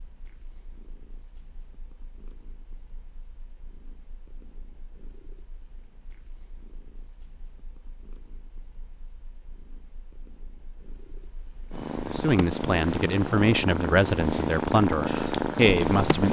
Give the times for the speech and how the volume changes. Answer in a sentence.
The speech can be heard from 12.1 to 16.2 s, getting louder.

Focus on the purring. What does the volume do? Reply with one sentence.
The loudness of the purring goes up.